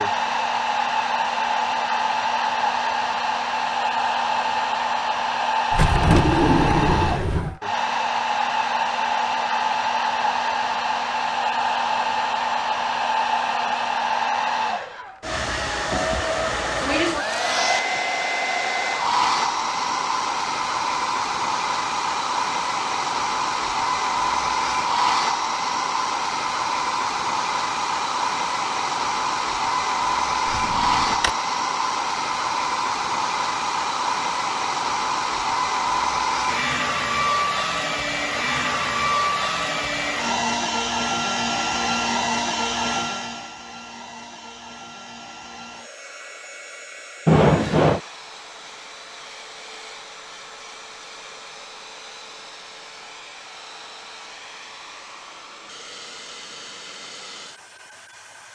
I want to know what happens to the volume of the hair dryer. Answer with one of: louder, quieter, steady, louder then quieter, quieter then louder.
quieter.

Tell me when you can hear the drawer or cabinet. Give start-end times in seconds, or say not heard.
5.7-7.5, 30.4-31.3, 47.2-48.0.